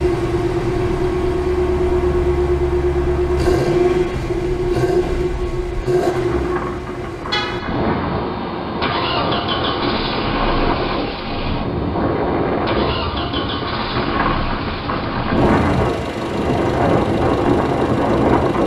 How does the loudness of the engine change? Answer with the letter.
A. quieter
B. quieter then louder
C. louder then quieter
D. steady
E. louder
A.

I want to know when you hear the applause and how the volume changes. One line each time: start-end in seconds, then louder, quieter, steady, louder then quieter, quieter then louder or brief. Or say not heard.
not heard.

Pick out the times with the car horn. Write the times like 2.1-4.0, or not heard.
7.3-8.0.